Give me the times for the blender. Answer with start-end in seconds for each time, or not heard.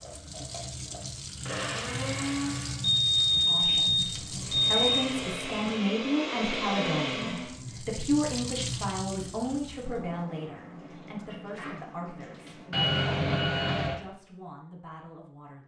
0.0-2.9, 4.3-7.6.